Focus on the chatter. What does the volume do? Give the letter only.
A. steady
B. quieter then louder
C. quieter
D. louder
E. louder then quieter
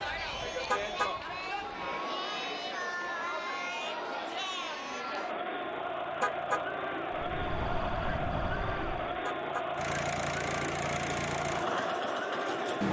A.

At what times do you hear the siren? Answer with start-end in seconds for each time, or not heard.
7.1-9.2.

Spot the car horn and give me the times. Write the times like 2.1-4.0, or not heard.
0.7-1.1, 6.2-6.7, 9.2-9.7.